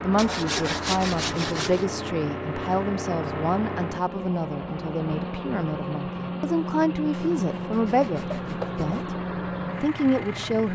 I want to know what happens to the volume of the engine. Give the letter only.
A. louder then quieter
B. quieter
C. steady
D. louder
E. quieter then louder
C.